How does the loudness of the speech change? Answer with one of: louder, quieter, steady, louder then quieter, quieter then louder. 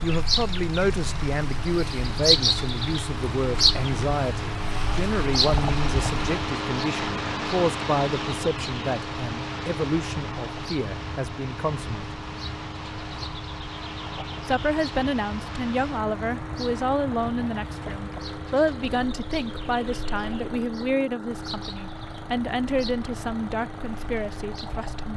steady.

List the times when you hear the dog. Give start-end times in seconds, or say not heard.
not heard.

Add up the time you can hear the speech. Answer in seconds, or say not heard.
23 s.